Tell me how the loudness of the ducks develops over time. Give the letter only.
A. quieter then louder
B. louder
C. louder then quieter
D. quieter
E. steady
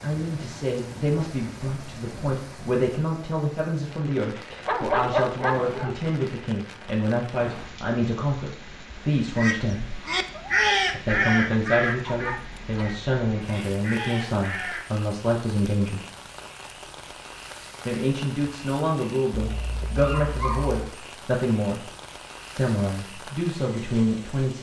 A.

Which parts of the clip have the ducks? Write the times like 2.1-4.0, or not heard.
9.3-14.8.